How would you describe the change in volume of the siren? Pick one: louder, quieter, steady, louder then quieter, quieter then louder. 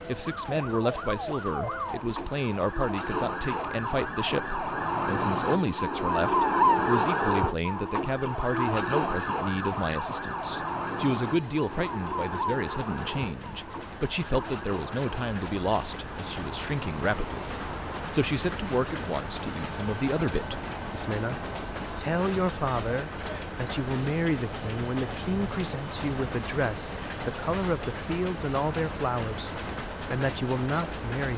louder then quieter.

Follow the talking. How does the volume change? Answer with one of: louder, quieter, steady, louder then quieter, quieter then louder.
steady.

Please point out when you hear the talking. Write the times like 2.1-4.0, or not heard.
0.1-31.3.